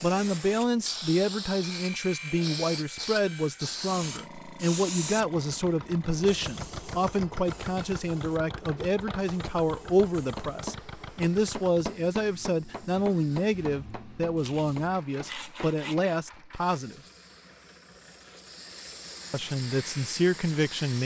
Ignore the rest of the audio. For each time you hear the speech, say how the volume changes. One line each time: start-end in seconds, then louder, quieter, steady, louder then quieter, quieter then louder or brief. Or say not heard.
0.0-17.0 steady
19.3-21.0 brief.